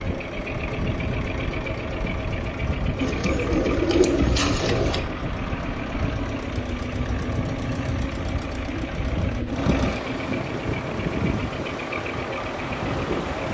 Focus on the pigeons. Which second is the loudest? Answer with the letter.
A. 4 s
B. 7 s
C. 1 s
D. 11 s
A.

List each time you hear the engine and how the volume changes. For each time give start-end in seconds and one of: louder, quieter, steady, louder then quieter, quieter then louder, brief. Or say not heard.
0.0-13.4 steady.